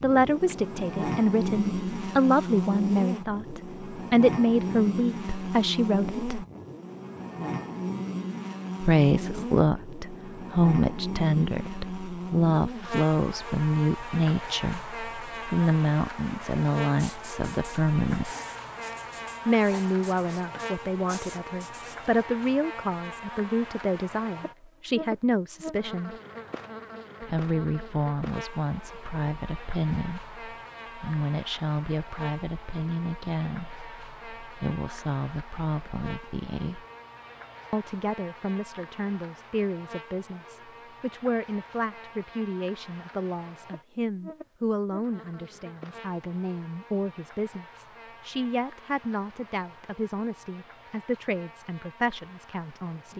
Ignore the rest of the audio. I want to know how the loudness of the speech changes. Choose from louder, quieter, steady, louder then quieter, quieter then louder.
quieter.